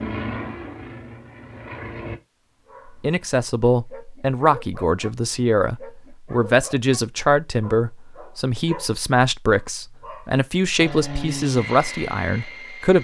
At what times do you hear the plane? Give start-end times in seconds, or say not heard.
0.0-2.2, 10.8-13.0.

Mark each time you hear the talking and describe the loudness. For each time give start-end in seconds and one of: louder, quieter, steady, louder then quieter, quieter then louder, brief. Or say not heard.
3.0-13.0 steady.